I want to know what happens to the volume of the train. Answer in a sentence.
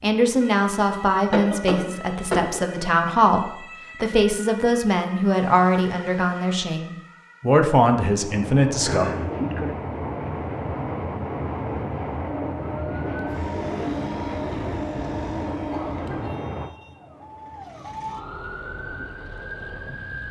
The loudness of the train goes down.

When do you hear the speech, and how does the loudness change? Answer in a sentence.
You can hear the speech from 0.0 to 9.1 s, at a steady volume.